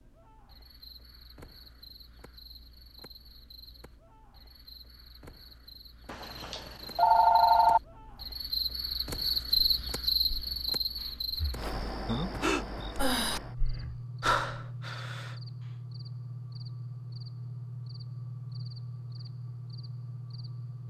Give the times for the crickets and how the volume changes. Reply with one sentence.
The crickets can be heard from 0.0 to 20.8 s, getting louder then quieter.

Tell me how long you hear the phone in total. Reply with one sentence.
The phone can be heard for 2 seconds in total.